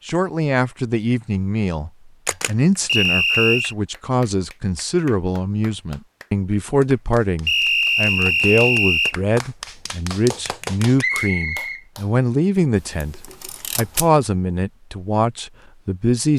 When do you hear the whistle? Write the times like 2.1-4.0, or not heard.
2.9-3.8, 7.5-9.2, 10.9-11.8.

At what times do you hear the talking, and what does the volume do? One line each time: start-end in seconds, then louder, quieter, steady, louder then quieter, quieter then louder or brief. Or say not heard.
0.1-13.2 steady
13.8-16.3 brief.